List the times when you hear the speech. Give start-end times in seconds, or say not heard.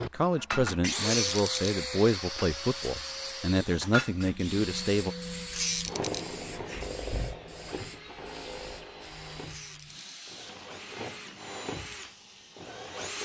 0.0-5.2.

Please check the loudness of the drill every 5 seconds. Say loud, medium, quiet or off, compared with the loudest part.
loud, medium, medium.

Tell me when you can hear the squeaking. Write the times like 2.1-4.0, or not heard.
1.0-1.8, 5.5-6.2, 9.4-9.9.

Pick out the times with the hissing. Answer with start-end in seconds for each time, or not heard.
4.2-13.2.